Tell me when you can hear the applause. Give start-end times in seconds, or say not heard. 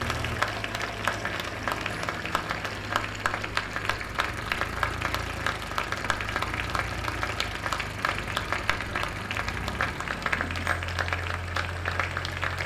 0.0-12.6.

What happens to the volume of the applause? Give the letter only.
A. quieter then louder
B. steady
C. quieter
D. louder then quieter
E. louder
B.